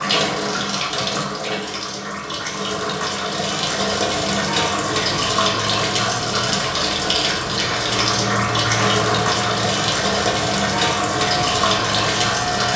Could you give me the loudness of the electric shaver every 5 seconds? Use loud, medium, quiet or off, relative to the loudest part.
off, loud, loud.